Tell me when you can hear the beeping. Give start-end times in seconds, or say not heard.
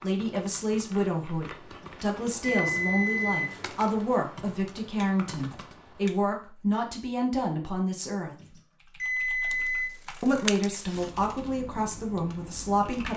1.8-3.5, 8.4-9.9.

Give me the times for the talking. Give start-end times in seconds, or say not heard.
0.0-8.6, 10.2-13.1.